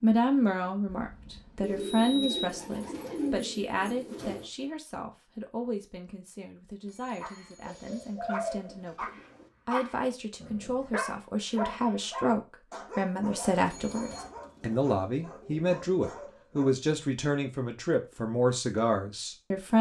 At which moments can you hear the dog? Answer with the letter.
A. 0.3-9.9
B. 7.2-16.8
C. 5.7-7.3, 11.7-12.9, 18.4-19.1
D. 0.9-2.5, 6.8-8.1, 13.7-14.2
B.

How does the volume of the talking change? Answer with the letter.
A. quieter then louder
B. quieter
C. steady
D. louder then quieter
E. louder
A.